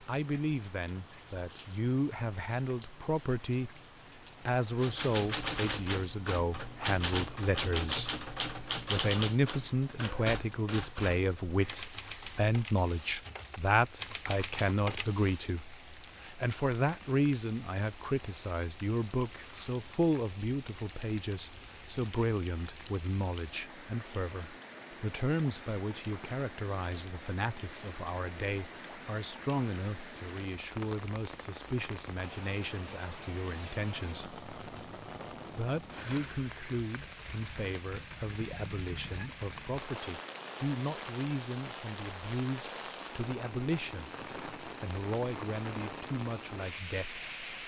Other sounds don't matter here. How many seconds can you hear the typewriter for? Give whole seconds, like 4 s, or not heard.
11 s.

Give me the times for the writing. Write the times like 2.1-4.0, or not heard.
not heard.